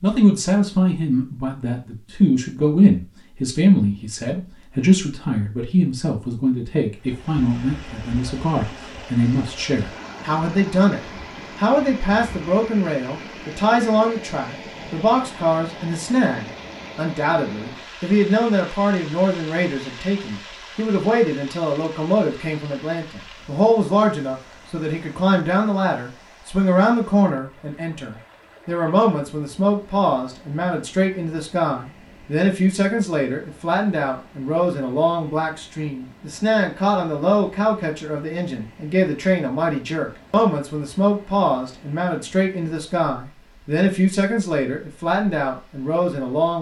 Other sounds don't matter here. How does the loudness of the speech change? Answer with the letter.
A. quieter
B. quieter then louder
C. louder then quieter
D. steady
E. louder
D.